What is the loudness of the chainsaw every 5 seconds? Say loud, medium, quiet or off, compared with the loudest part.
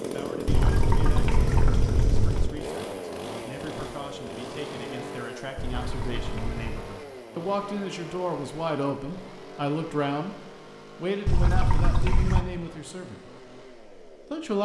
loud, medium, quiet.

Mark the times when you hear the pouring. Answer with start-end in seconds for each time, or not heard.
0.5-2.5, 5.5-6.8, 11.2-12.4.